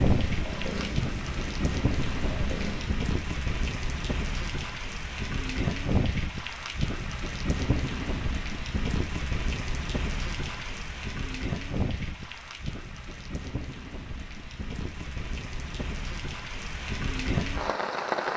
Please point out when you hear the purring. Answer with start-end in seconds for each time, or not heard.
0.1-3.0.